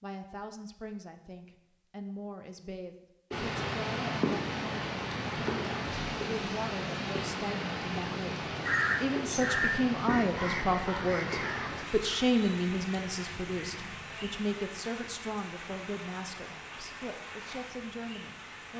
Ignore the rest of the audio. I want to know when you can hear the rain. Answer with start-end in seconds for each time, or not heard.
3.3-18.7.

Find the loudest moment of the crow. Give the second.
9 s.